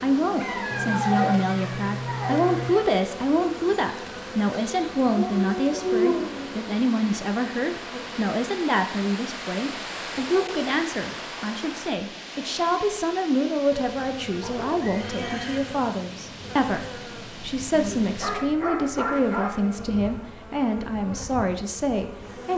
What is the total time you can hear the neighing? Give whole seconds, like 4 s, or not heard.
3 s.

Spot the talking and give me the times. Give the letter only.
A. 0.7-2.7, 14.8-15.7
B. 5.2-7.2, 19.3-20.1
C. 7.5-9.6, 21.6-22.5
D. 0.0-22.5
D.